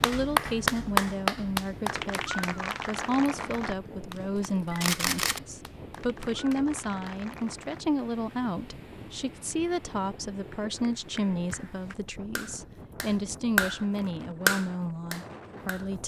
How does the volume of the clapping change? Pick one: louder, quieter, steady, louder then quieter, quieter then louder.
quieter then louder.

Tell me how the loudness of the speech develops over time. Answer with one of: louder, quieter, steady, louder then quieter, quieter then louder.
steady.